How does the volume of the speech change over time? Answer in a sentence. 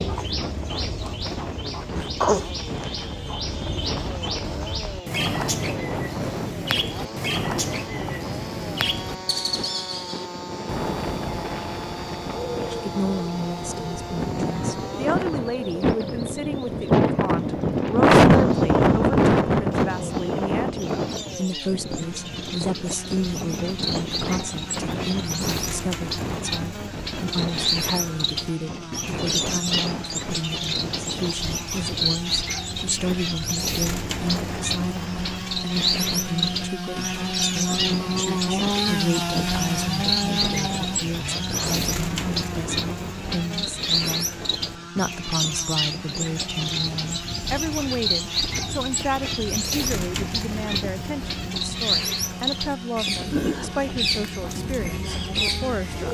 The loudness of the speech stays about the same.